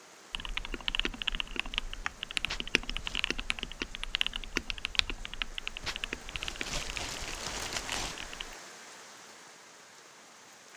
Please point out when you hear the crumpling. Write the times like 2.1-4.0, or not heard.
2.5-3.3, 5.8-8.2.